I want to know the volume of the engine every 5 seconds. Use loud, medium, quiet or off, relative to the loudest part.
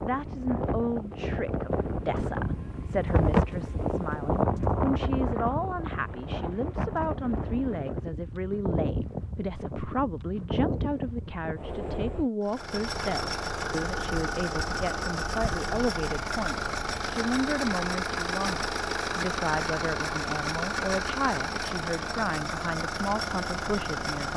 off, off, loud, loud, loud.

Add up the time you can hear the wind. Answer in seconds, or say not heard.
12 s.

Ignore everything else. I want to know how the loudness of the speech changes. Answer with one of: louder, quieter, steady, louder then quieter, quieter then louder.
steady.